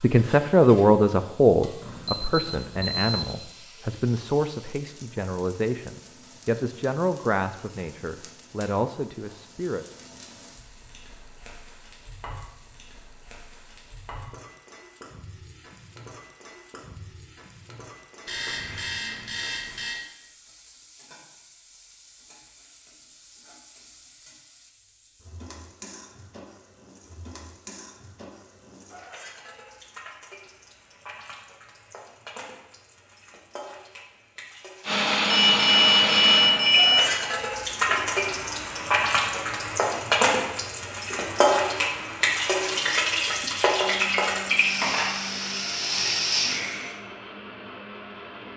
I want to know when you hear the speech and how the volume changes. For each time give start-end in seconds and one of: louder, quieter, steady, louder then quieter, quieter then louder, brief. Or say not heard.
0.0-9.8 quieter.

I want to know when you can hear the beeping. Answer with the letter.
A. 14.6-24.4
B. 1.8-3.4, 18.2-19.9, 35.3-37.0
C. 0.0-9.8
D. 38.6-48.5
B.